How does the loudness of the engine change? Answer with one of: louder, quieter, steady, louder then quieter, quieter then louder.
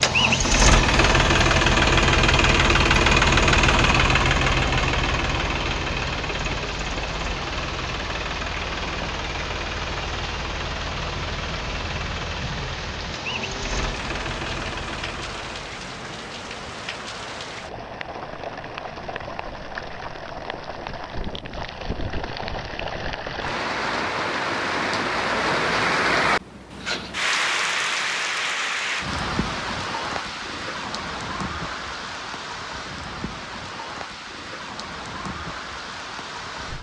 quieter.